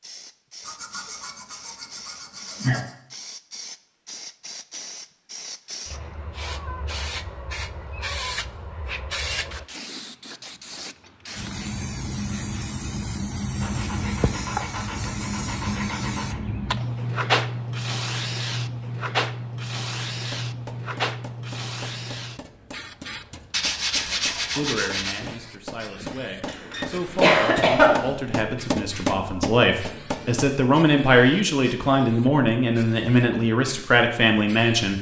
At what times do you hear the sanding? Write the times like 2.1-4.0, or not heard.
0.6-3.0, 13.6-16.4, 23.5-25.2.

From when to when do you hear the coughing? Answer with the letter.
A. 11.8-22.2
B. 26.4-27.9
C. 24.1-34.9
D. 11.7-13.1
B.